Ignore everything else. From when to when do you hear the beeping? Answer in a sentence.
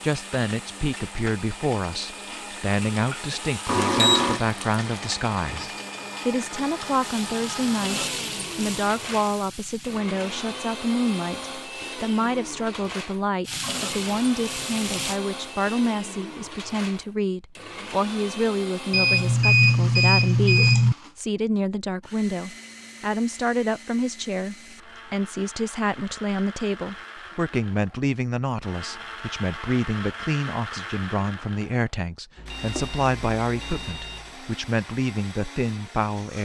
The beeping can be heard from 3.6 to 4.4 s, from 18.9 to 20.9 s and from 32.4 to 34.4 s.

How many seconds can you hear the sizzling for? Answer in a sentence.
The sizzling can be heard for 12 seconds in total.